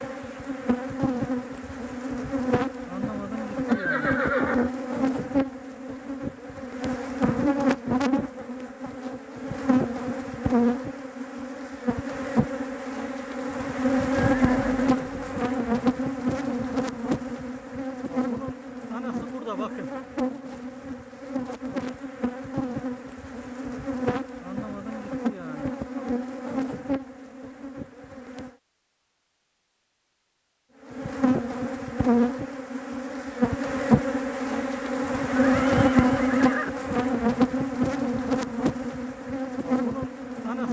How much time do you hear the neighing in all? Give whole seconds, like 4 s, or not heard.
4 s.